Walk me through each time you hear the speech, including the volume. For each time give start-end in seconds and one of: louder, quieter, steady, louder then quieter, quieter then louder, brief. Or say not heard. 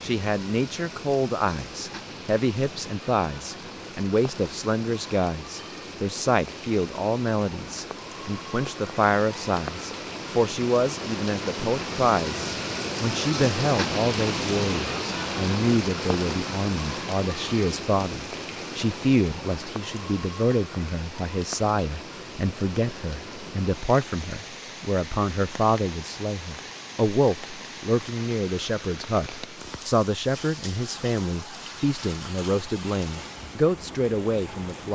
0.0-34.8 steady.